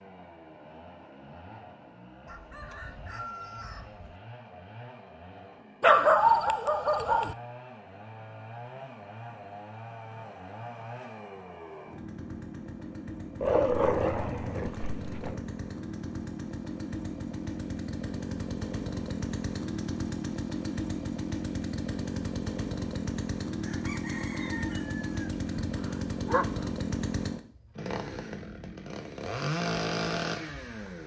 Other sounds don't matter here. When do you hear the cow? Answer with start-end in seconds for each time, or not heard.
not heard.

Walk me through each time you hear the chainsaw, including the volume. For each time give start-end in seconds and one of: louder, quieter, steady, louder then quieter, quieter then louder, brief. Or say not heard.
0.0-31.0 louder.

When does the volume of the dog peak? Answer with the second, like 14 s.
6 s.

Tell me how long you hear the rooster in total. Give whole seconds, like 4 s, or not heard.
4 s.